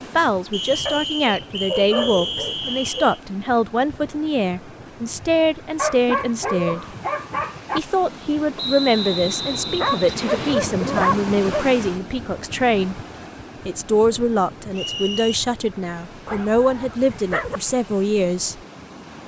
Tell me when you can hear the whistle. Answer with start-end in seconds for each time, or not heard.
0.5-3.2, 8.6-10.6, 14.7-15.3.